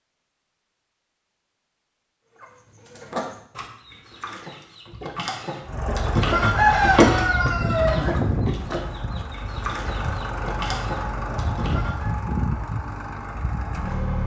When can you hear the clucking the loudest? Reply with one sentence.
The loudest moment of the clucking is at 7 seconds.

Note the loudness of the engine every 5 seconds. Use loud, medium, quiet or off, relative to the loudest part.
off, loud, loud.